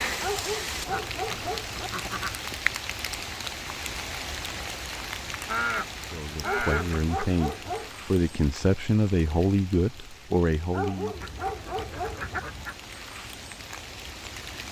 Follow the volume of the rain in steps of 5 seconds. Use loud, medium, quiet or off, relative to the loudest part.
loud, medium, medium.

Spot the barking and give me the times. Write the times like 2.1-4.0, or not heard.
0.2-1.9, 6.4-7.9, 10.7-12.4.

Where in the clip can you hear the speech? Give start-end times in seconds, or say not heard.
6.1-11.2.